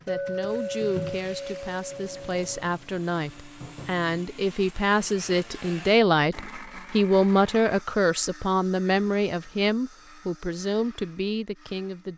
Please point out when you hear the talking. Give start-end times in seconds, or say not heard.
0.1-12.1.